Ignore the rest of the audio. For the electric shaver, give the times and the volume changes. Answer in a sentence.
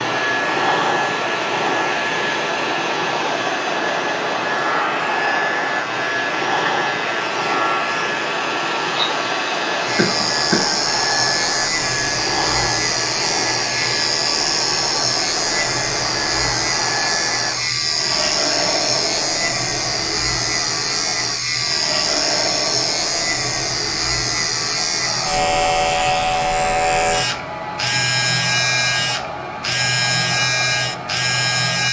You can hear the electric shaver from 0.0 to 31.8 s, getting louder.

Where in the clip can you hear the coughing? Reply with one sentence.
The coughing can be heard from 9.9 to 10.8 s.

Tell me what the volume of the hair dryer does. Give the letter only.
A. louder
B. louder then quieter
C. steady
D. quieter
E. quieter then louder
D.